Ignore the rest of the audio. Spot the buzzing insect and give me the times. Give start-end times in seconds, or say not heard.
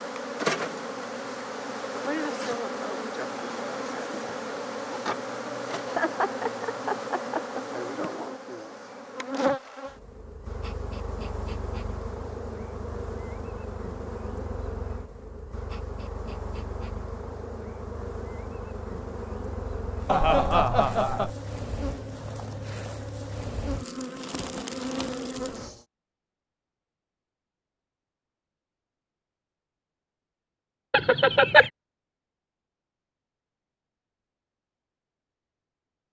0.0-25.9.